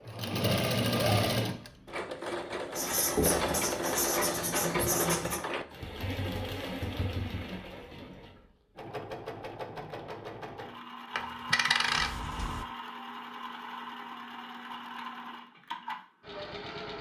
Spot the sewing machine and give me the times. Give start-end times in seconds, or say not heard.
0.0-16.9.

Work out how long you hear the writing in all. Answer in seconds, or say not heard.
3 s.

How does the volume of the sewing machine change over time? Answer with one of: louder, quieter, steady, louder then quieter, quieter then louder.
quieter.